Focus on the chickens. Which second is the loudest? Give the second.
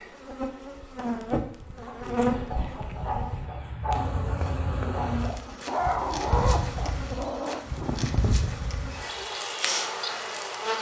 6 s.